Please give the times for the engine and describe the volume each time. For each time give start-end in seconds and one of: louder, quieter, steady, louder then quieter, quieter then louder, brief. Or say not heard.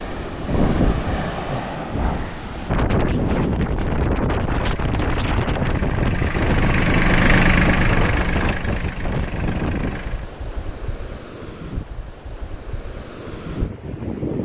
4.5-10.3 louder then quieter.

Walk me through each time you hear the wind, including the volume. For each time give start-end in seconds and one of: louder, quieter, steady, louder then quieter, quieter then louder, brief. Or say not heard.
0.0-14.4 quieter.